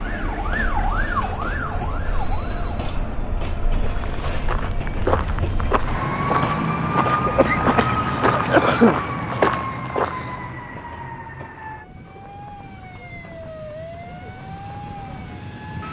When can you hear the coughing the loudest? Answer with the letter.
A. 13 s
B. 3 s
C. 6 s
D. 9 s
D.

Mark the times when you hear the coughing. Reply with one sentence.
You can hear the coughing from 7.2 to 9.0 s.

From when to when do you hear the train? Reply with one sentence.
You can hear the train from 0.0 to 15.8 s.